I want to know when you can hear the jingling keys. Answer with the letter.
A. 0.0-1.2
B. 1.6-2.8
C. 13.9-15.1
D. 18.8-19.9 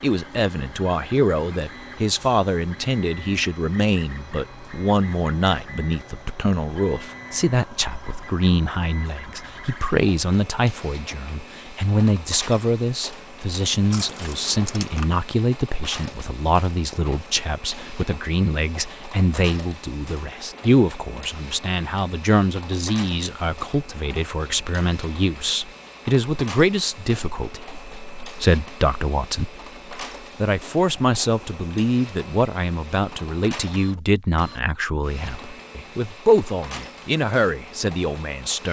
C.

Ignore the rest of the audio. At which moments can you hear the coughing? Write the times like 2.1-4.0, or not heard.
not heard.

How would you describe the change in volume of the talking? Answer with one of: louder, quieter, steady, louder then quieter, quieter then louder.
steady.